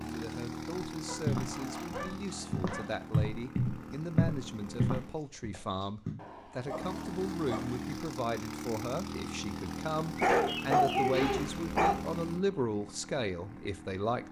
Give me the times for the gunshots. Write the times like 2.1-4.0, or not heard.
not heard.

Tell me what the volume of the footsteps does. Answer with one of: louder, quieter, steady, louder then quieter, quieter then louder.
louder then quieter.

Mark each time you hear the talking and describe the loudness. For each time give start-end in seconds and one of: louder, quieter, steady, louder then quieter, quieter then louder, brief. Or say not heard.
0.1-14.2 louder.